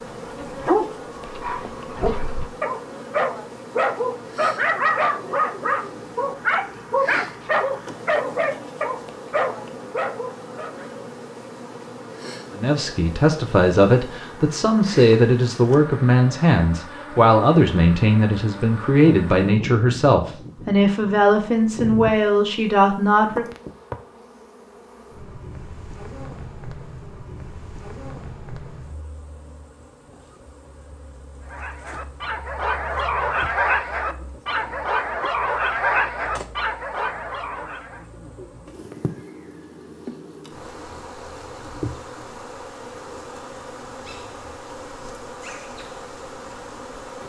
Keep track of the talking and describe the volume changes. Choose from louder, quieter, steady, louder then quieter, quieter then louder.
steady.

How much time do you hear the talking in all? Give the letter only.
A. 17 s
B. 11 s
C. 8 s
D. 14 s
B.